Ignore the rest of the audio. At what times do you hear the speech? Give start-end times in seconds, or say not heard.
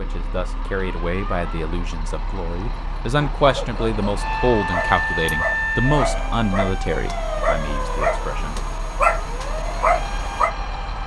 0.0-8.6.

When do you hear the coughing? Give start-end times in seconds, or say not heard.
not heard.